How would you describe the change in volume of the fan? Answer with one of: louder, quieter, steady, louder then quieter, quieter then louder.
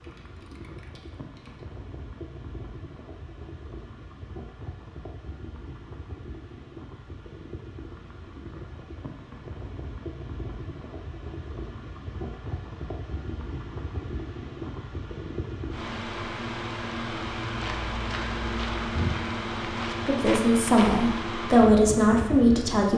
louder.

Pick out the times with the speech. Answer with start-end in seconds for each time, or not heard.
20.1-22.9.